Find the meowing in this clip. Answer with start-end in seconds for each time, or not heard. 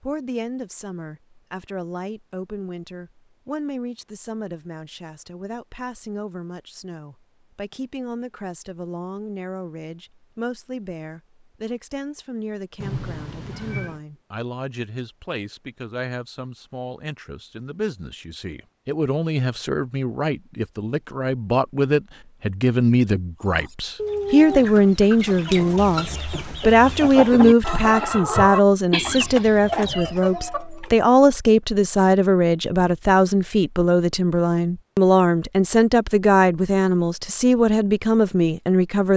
12.8-14.0.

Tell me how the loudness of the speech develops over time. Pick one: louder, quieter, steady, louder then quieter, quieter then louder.
louder.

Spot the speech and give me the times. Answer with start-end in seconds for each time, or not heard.
0.0-39.1.